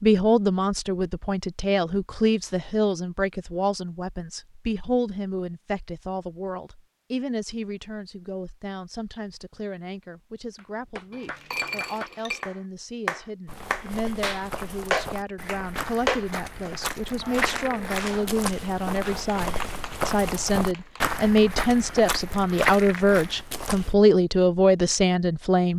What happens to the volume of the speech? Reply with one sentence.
The loudness of the speech goes down, then up.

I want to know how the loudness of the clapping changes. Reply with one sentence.
The volume of the clapping goes up, then down.